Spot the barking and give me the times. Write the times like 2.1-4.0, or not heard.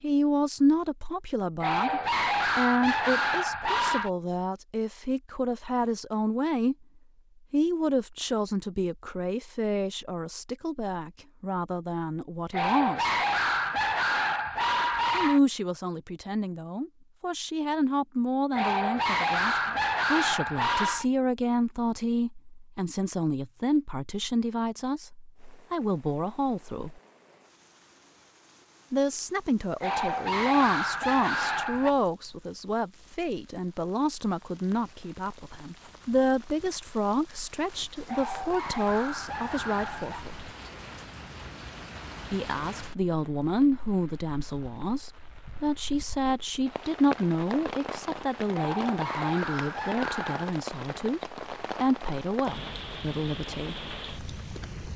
1.6-4.1, 12.5-15.4, 18.5-21.1, 29.8-31.9, 38.0-40.2, 48.5-50.5.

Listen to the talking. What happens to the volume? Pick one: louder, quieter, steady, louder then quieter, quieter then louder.
steady.